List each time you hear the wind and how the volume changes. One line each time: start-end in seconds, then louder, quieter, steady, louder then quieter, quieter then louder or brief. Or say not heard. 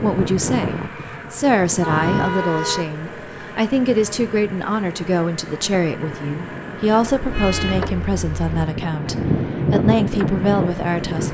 0.0-11.2 quieter then louder.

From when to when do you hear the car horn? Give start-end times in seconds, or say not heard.
1.8-2.9, 7.2-8.7.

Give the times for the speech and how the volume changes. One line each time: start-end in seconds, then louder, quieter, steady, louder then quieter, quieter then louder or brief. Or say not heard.
0.0-11.2 steady.